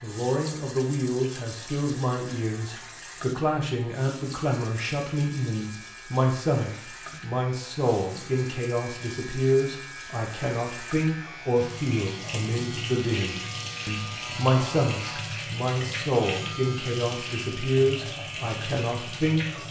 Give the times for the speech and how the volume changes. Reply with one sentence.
You can hear the speech from 0.0 to 19.6 s, at a steady volume.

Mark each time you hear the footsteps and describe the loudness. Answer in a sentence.
You can't hear the footsteps here.